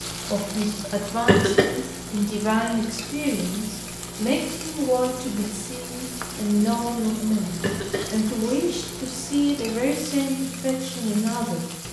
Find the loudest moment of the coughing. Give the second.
1 s.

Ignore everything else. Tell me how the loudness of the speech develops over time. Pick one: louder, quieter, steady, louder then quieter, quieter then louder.
steady.